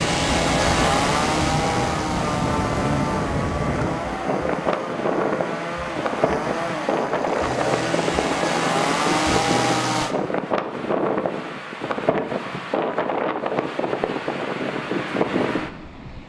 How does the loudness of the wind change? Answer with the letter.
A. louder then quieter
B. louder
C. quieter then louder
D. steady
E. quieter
D.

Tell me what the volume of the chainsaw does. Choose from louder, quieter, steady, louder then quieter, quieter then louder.
quieter then louder.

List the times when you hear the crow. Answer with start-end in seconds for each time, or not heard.
not heard.